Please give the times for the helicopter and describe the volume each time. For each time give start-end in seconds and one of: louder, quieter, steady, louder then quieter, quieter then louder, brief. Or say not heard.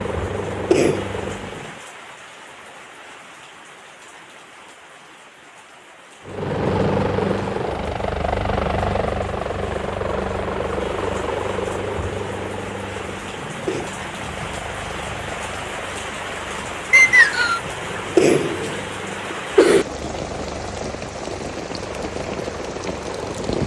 0.0-1.8 brief
6.2-23.6 quieter.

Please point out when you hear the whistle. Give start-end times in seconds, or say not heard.
16.9-17.6.